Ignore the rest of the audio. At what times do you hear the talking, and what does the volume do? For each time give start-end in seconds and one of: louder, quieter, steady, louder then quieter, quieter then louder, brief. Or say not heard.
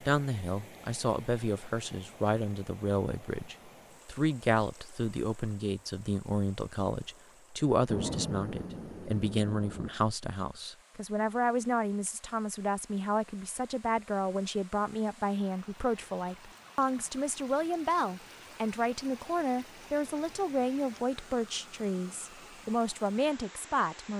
0.0-24.1 steady.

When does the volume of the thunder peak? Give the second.
8 s.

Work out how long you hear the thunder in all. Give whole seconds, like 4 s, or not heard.
2 s.